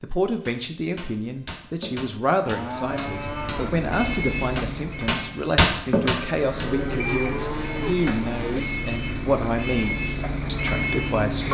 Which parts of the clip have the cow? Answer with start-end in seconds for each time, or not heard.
2.5-3.9, 6.0-8.7.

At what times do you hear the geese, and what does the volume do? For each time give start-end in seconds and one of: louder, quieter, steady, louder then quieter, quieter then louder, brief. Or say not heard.
not heard.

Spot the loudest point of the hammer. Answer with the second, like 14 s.
6 s.